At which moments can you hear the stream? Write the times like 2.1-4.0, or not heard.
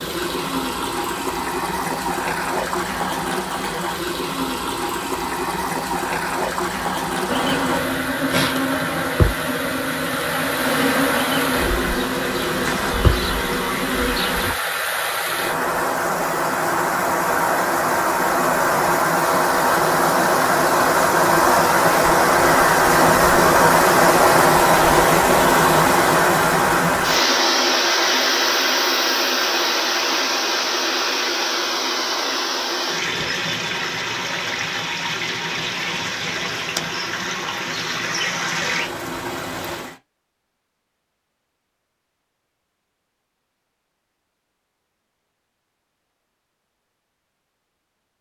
0.0-40.0.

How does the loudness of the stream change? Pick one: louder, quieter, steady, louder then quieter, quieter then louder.
louder then quieter.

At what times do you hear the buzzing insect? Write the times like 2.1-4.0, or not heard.
7.2-14.6.